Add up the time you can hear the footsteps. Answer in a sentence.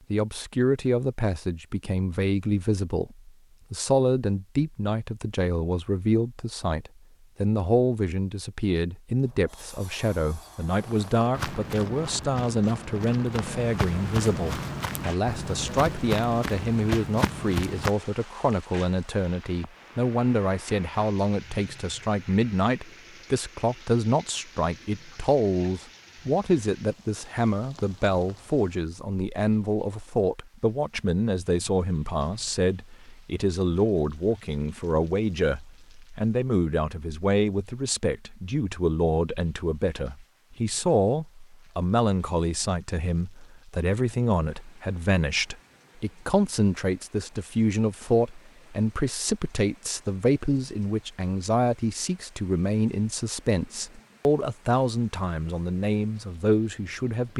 The footsteps can be heard for 7 seconds in total.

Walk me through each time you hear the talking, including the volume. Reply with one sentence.
The talking can be heard from 0.1 to 57.3 s, at a steady volume.